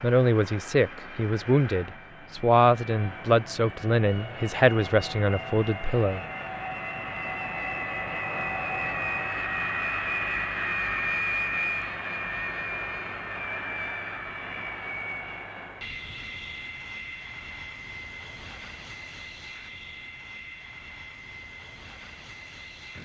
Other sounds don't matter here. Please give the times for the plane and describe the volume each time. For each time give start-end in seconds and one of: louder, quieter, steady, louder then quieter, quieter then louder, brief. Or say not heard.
0.0-22.9 louder then quieter.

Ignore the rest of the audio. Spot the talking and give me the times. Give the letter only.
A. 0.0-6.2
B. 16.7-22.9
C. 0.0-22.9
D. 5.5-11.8
A.